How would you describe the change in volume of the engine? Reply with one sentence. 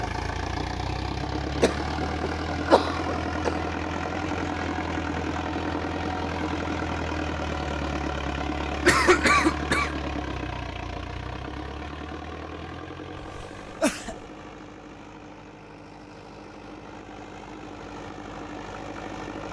The volume of the engine goes down.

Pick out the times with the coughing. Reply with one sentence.
The coughing can be heard from 1.6 to 3.5 s, from 8.8 to 9.9 s and from 13.2 to 14.2 s.